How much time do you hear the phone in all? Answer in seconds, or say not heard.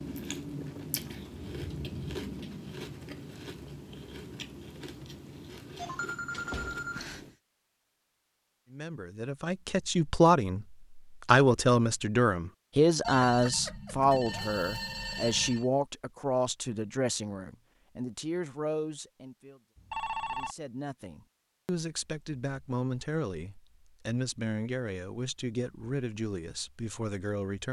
5 s.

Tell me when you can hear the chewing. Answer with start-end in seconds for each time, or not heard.
0.0-7.3.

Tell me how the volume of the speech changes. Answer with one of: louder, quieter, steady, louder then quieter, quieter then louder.
quieter.